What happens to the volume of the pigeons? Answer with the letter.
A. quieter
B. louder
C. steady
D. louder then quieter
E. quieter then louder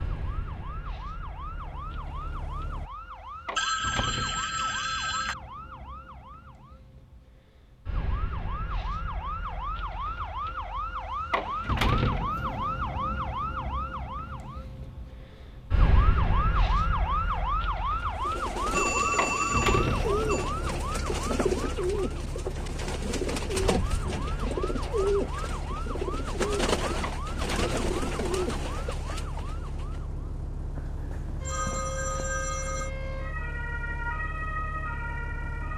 C.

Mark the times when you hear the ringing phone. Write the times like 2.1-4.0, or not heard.
3.5-5.3, 18.7-20.5, 30.8-32.9.